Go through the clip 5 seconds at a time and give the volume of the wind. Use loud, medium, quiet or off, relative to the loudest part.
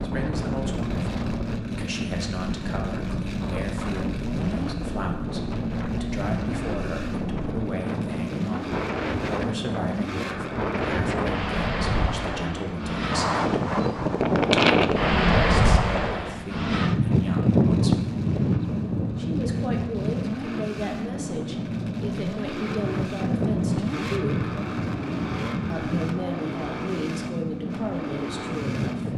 medium, medium, loud, loud, medium, medium.